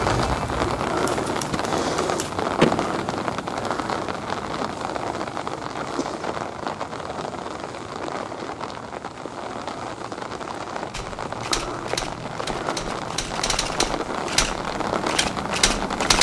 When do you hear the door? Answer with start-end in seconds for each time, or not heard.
2.5-3.4.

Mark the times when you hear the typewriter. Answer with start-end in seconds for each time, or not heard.
0.0-2.3, 10.9-16.1.